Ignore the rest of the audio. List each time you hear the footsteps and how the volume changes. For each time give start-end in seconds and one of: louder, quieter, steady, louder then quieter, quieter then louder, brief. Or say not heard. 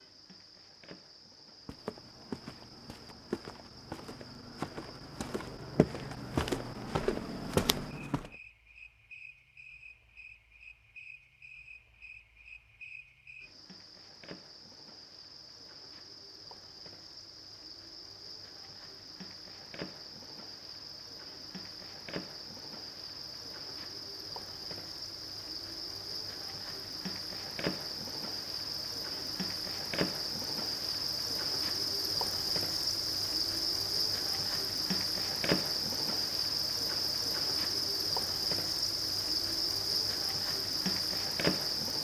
1.6-8.3 louder.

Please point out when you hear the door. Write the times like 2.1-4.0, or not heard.
not heard.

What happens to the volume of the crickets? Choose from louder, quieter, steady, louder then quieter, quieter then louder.
louder.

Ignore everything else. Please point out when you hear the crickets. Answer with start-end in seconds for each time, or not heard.
0.0-42.0.